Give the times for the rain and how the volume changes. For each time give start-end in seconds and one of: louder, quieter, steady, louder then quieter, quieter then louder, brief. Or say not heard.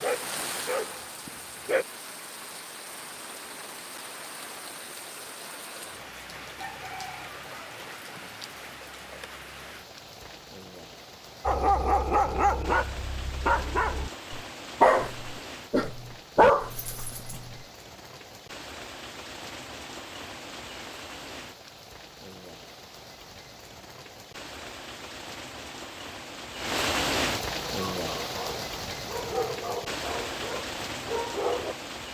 0.0-32.0 louder.